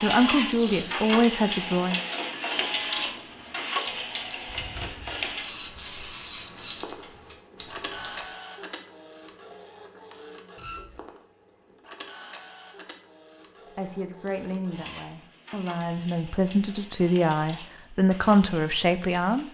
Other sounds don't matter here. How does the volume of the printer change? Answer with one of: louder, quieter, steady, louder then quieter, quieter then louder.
quieter.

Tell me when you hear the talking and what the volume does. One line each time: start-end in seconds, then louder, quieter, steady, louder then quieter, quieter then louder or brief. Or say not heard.
0.0-2.0 brief
13.8-19.4 louder.